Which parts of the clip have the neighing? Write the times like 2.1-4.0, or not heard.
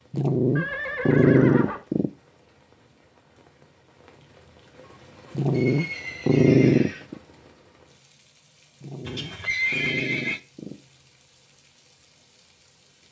0.6-1.9, 5.5-7.0, 9.1-10.4.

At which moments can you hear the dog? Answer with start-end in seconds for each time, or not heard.
0.1-2.1, 5.3-7.2, 8.8-10.8.